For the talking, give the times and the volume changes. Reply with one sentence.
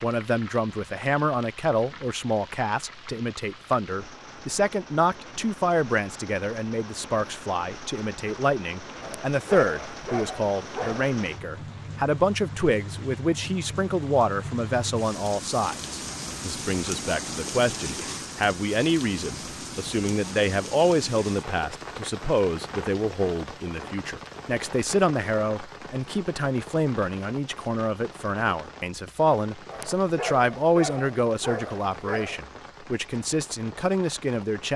The talking can be heard from 0.0 to 34.7 s, at a steady volume.